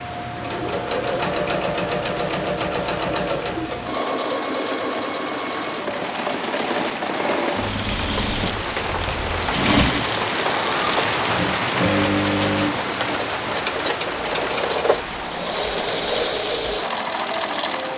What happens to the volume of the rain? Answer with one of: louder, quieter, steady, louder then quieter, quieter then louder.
louder then quieter.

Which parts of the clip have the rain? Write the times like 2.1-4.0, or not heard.
0.0-17.9.